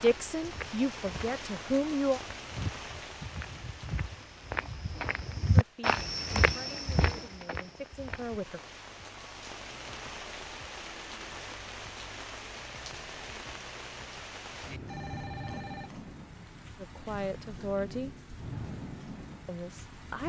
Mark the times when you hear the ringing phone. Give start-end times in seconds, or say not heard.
14.8-16.1.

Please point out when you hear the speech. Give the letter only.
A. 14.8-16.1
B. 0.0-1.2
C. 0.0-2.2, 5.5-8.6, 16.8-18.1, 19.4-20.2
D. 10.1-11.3
C.